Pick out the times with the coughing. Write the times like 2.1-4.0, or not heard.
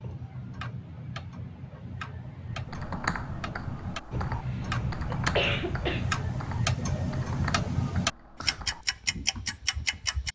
4.1-6.1.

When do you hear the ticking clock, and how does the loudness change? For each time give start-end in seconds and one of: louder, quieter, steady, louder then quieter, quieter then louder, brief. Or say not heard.
0.0-10.2 louder.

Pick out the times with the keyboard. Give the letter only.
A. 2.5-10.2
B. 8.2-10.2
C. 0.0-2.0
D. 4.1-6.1
A.